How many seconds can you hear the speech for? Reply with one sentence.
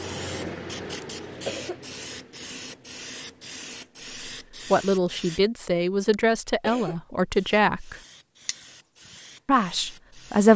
The speech can be heard for 4 seconds in total.